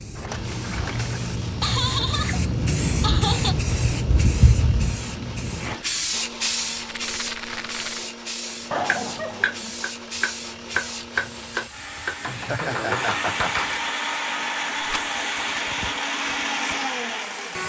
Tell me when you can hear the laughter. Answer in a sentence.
The laughter can be heard from 1.6 to 3.5 s, from 8.7 to 9.6 s and from 12.3 to 13.6 s.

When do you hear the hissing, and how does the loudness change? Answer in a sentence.
You can hear the hissing from 0.0 to 17.6 s, getting quieter.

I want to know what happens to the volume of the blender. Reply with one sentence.
The volume of the blender goes up.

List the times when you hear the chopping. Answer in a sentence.
The chopping can be heard from 8.8 to 13.8 s.